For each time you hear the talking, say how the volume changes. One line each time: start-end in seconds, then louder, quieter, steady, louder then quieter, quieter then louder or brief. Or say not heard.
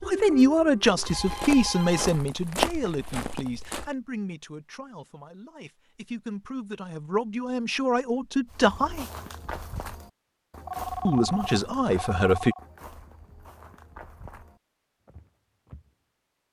0.1-9.1 quieter then louder
11.1-12.6 brief.